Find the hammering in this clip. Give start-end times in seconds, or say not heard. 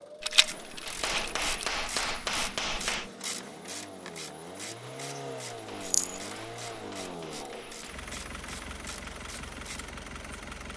0.8-3.1, 5.5-8.1.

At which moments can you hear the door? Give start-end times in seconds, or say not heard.
not heard.